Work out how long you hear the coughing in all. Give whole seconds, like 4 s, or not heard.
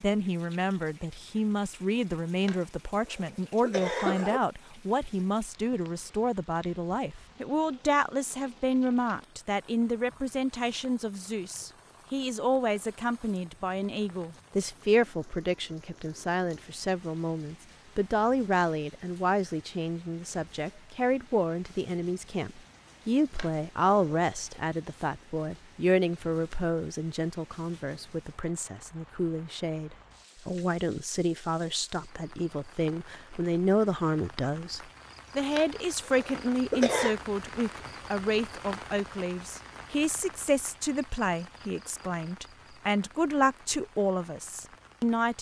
5 s.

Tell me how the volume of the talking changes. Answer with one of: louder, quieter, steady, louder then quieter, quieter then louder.
steady.